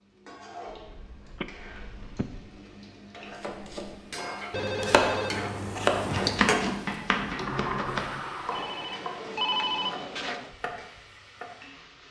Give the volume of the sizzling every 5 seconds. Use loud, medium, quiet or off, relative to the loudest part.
medium, loud, quiet.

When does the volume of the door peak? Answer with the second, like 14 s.
8 s.